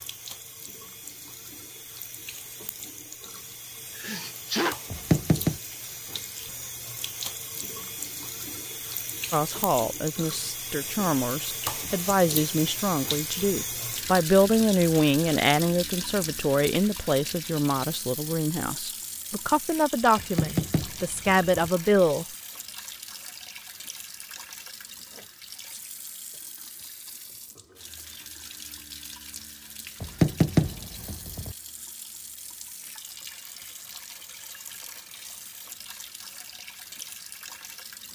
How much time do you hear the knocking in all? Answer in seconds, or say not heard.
4 s.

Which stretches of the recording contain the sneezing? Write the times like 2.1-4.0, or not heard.
4.0-4.8.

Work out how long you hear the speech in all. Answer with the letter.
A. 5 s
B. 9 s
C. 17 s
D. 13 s
D.